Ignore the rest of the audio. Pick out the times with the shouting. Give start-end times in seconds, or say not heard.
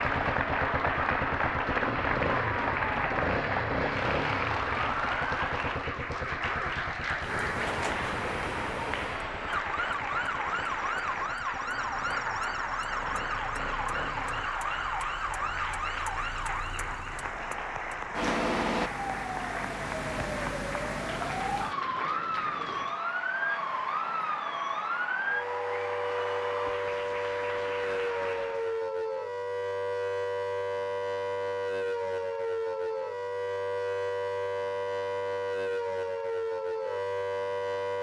not heard.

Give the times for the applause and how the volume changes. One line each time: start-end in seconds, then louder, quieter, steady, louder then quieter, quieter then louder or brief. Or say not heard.
0.0-28.9 quieter.